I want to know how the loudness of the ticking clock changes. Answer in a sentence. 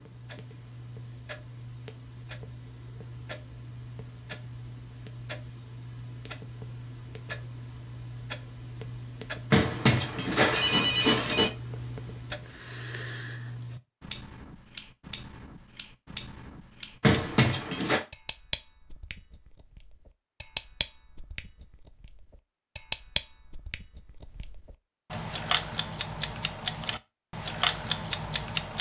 The loudness of the ticking clock goes up.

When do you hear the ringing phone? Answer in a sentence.
You can hear the ringing phone from 9.5 to 11.5 s and from 17.0 to 18.0 s.